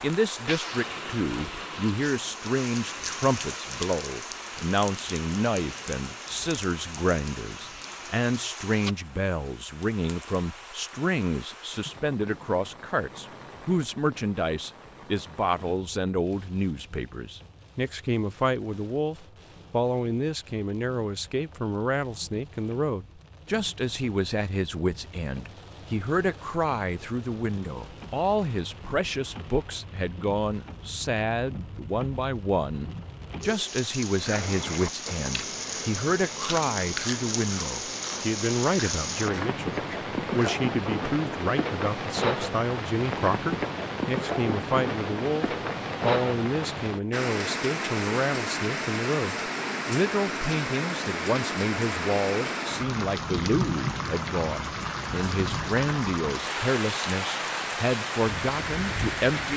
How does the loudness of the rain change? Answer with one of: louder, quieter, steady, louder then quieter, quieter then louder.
quieter then louder.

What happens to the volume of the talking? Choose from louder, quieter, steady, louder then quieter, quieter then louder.
steady.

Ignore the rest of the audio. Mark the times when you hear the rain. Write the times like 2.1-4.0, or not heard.
0.0-59.5.